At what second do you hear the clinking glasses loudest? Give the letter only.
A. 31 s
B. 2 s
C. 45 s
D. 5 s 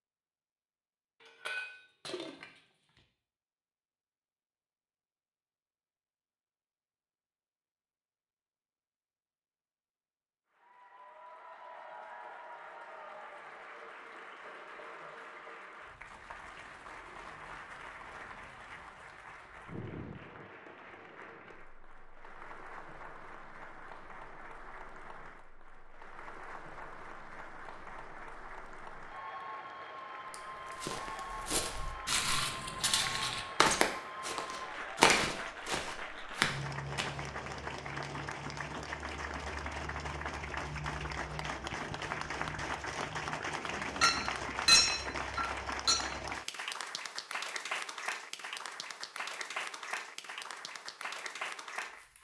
C.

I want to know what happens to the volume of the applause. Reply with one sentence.
The loudness of the applause goes up.